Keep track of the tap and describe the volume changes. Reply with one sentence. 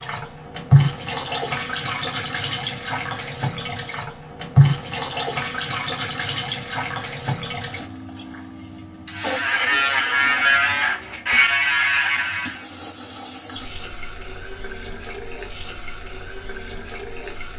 The loudness of the tap goes down.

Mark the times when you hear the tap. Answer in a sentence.
The tap can be heard from 0.0 to 17.5 s.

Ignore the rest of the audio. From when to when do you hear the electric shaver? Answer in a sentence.
The electric shaver can be heard from 9.1 to 12.7 s.